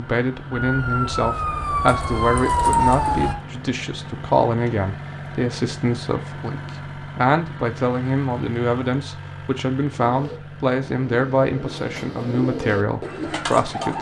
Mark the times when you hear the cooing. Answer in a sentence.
The cooing can be heard from 9.9 to 13.9 s.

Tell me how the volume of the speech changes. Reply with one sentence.
The loudness of the speech stays about the same.